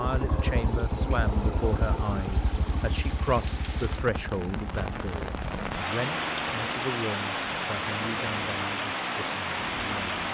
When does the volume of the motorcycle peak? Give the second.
1 s.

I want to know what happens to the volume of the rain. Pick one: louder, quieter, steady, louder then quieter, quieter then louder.
louder.